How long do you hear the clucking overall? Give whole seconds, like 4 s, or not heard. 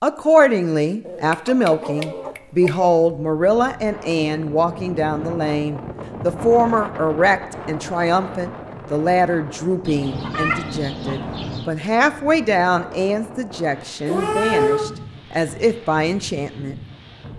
4 s.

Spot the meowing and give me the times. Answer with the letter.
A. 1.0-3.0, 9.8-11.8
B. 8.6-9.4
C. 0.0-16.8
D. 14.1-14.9
D.